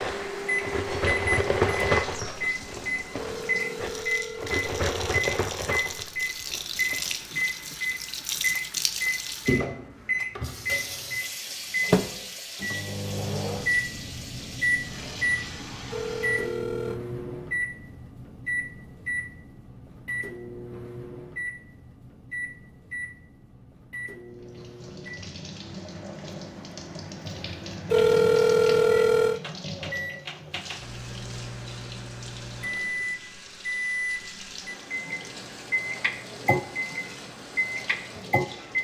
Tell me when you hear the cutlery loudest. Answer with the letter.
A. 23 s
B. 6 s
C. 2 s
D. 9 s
C.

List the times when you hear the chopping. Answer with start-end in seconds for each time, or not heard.
not heard.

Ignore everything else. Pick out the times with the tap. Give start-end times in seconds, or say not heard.
0.0-16.6, 24.4-38.7.